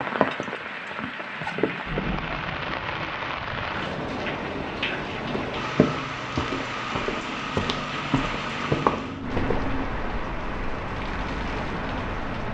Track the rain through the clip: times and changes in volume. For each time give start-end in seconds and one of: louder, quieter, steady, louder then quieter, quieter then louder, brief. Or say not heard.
0.0-12.4 steady.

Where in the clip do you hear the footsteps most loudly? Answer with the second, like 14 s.
9 s.